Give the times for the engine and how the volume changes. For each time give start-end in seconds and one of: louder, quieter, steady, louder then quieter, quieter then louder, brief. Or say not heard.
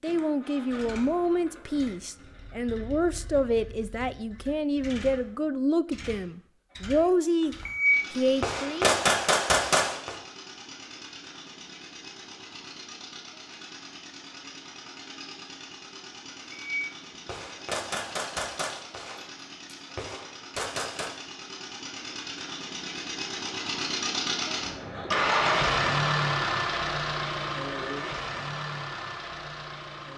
0.0-30.1 louder.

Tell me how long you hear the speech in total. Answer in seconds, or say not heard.
9 s.